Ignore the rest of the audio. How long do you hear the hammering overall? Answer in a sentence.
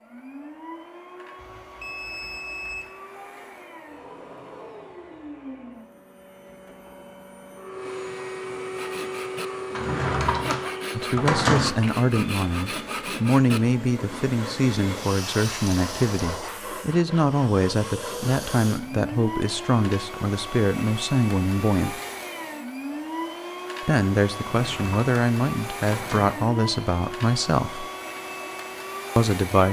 You can't hear the hammering here.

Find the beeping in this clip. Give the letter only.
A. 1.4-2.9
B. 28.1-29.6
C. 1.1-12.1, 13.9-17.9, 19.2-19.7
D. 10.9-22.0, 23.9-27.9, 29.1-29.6
A.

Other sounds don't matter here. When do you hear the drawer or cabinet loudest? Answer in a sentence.
The volume of the drawer or cabinet peaks at 11 seconds.